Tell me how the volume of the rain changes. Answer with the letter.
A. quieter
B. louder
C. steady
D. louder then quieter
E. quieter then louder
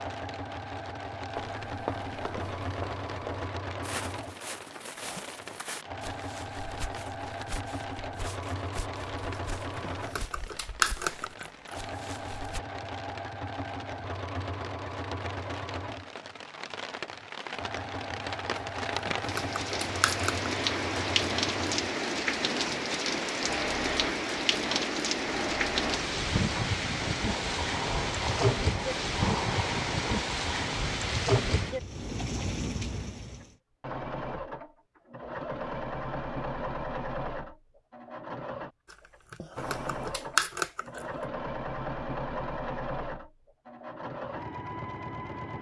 B.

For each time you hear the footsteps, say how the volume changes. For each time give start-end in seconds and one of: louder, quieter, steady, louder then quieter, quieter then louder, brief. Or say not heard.
1.4-12.6 quieter.